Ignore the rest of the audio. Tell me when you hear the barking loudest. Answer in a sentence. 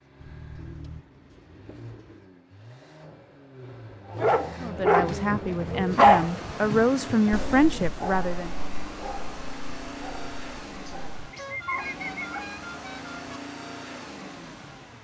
The loudest moment of the barking is at 6 seconds.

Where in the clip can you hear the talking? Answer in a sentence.
You can hear the talking from 4.6 to 8.6 s.